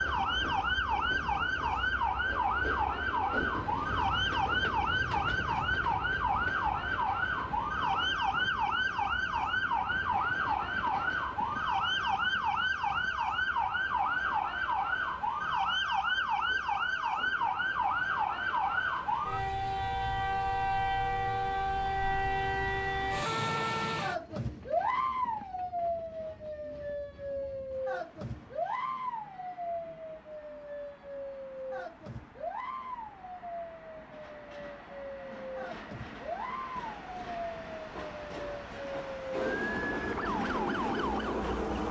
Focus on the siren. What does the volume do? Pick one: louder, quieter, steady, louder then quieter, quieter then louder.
quieter.